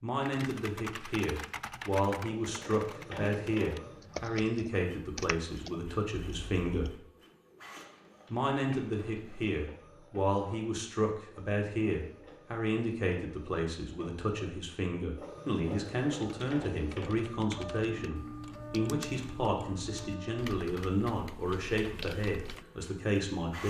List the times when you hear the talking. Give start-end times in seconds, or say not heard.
0.0-7.0, 8.3-23.6.